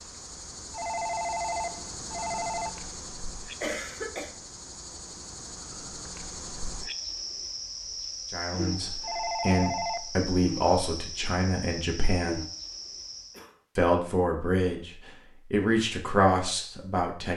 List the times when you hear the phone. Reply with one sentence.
The phone can be heard from 0.7 to 2.7 s and from 9.0 to 10.1 s.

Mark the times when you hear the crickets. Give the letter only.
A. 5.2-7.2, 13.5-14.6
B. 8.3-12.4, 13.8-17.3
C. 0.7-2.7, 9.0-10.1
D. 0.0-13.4
D.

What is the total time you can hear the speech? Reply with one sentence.
The speech can be heard for 8 seconds in total.